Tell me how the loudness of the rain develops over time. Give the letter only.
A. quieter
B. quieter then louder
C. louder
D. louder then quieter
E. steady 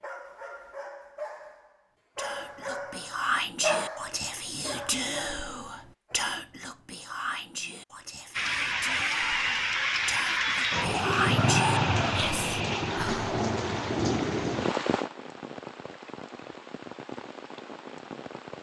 A.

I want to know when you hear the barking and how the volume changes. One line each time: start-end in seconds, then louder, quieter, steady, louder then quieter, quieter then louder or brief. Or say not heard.
0.0-6.3 louder then quieter.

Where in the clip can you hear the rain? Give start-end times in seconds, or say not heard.
8.3-18.5.